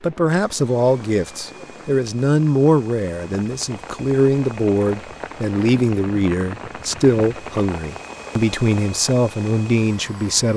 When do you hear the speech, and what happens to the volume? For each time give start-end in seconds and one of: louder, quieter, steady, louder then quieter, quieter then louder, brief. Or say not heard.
0.0-10.5 steady.